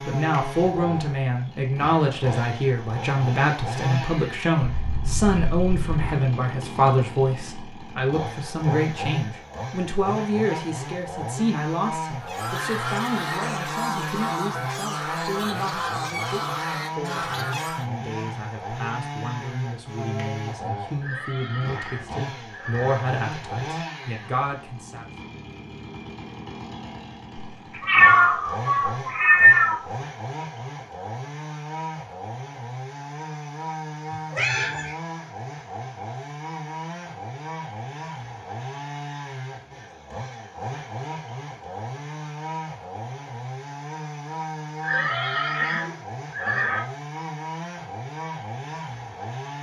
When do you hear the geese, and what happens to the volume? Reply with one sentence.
The geese can be heard from 12.2 to 17.9 s, at a steady volume.